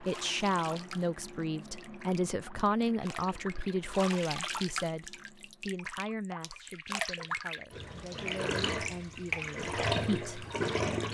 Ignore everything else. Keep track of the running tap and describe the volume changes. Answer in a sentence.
The volume of the running tap goes up.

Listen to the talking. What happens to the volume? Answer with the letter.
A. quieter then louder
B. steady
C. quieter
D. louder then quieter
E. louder
C.